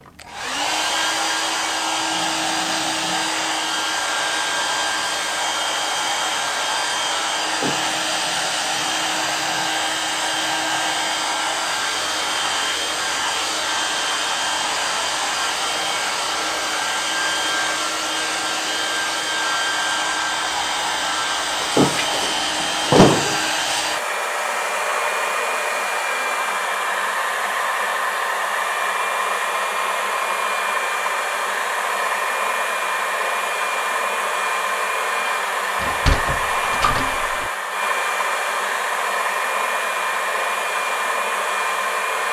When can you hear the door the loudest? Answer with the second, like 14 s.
23 s.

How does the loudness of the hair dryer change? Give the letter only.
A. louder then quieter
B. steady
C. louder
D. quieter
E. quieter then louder
B.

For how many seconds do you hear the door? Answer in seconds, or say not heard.
4 s.